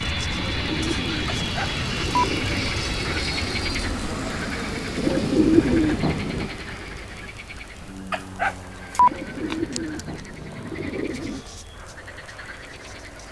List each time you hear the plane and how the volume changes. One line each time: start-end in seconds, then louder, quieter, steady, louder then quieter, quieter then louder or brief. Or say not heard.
0.0-13.2 quieter.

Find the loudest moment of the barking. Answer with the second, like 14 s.
9 s.